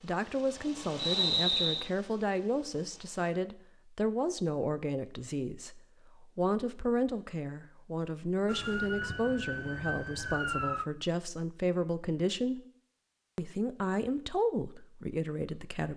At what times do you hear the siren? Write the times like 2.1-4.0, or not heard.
8.4-10.8.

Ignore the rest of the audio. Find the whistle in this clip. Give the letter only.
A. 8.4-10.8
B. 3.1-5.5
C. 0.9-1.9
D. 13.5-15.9
C.